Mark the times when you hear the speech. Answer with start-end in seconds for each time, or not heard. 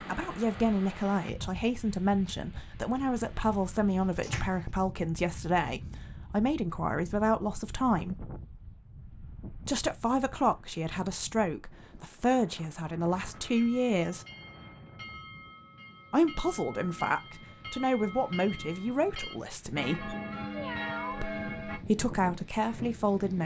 0.1-8.2, 9.7-14.2, 16.1-20.1, 21.1-23.4.